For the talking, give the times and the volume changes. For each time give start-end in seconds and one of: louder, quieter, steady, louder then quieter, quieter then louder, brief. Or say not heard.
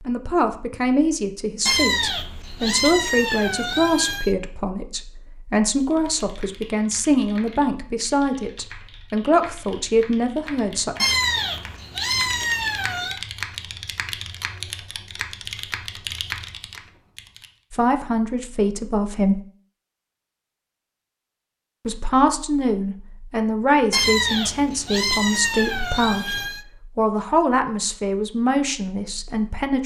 0.1-10.9 steady
17.7-19.4 brief
21.9-29.8 steady.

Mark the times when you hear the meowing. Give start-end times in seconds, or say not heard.
1.6-4.3, 11.0-13.2, 23.9-26.6.